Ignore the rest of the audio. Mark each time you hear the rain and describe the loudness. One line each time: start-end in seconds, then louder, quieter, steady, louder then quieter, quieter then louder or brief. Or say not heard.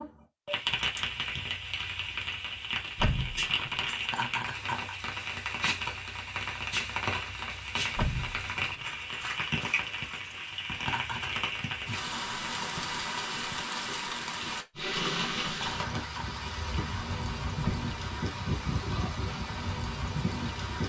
0.0-20.8 steady.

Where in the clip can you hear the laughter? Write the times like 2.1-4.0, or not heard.
4.0-5.0, 10.8-11.3, 15.5-16.4.